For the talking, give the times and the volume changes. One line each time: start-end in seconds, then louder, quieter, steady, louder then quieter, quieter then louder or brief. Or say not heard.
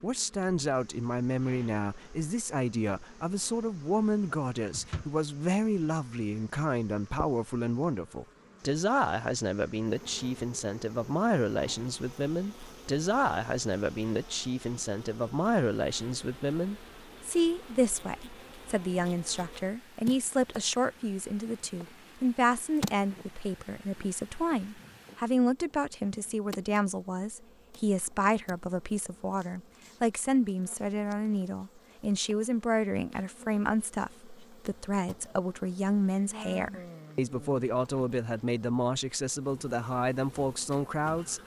0.0-41.4 steady.